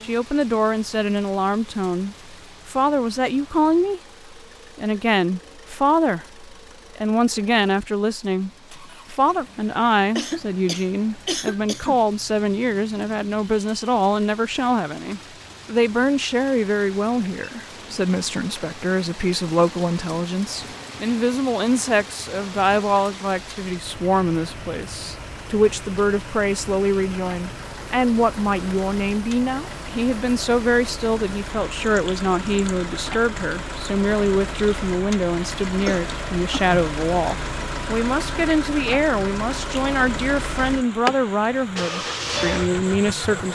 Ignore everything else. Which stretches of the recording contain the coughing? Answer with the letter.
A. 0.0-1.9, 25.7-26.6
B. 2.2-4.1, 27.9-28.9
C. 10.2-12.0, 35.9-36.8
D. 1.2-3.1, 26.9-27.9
C.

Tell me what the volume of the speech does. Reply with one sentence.
The loudness of the speech stays about the same.